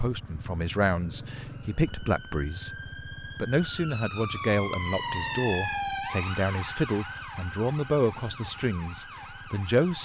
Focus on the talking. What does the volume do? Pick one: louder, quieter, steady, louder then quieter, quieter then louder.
steady.